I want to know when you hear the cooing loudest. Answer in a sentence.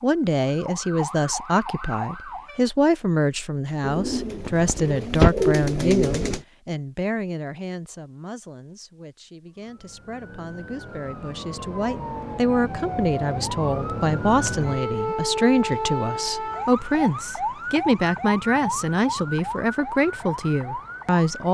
The volume of the cooing peaks at 5 seconds.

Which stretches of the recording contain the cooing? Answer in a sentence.
The cooing can be heard from 3.8 to 6.4 s.